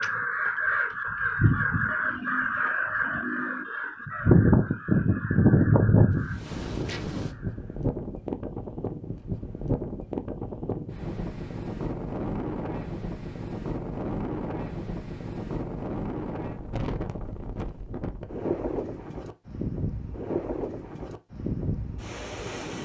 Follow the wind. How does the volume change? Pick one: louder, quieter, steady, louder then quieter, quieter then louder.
steady.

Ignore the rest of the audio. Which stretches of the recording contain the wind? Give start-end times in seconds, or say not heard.
6.1-22.7.